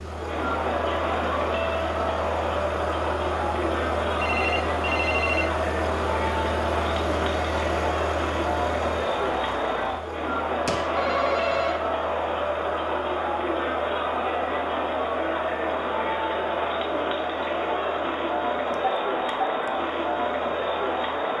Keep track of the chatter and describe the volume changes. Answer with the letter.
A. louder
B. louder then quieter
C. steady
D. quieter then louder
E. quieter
C.